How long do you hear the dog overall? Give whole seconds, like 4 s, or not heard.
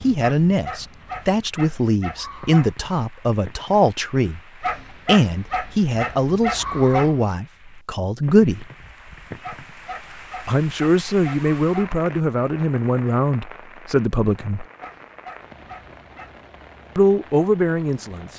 9 s.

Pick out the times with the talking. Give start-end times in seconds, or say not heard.
0.0-4.4, 5.0-8.7, 10.4-14.7, 16.9-18.3.